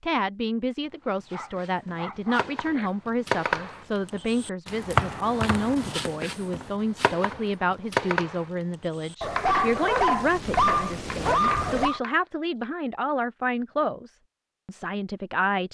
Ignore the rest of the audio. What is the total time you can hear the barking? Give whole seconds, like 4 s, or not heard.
5 s.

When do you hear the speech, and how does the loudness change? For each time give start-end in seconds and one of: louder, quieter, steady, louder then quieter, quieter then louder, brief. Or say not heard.
0.0-15.6 steady.